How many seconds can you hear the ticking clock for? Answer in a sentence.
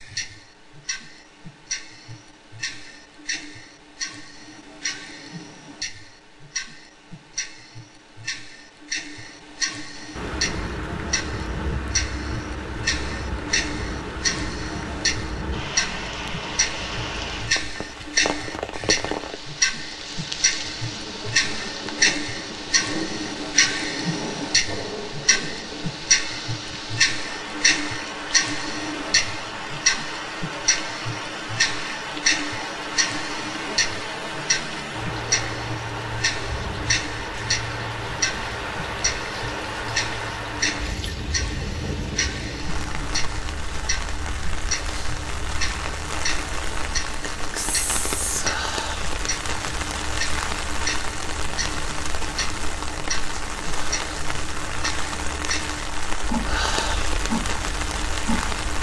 The ticking clock can be heard for 59 seconds in total.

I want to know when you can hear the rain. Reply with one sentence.
You can hear the rain from 10.2 to 58.7 s.